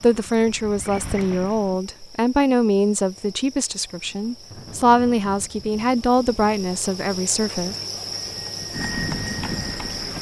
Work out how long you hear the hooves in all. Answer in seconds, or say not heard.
4 s.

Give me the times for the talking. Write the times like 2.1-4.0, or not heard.
0.0-7.8.